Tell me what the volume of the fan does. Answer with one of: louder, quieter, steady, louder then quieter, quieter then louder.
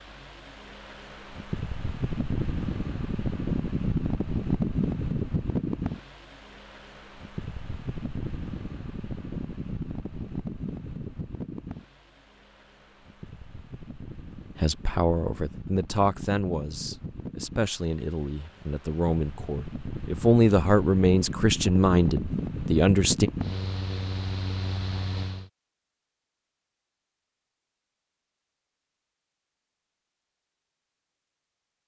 quieter then louder.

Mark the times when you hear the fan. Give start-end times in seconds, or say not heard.
0.0-25.5.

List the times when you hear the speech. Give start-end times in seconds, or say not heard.
14.6-23.3.